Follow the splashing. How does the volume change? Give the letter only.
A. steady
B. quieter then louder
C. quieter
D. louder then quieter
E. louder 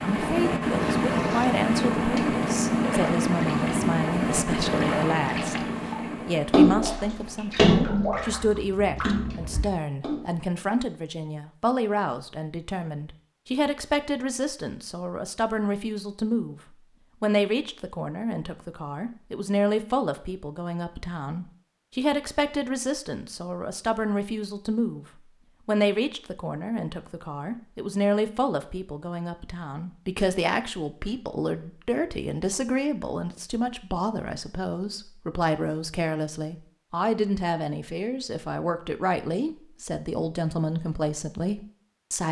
D.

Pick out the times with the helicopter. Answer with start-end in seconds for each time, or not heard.
0.0-9.7.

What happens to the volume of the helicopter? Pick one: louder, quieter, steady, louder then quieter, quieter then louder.
quieter.